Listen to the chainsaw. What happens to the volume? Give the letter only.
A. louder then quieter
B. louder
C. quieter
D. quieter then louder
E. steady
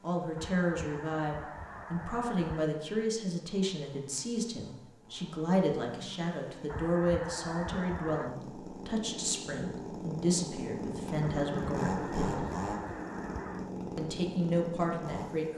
B.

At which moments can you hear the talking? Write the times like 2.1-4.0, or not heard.
0.0-12.5, 13.9-15.5.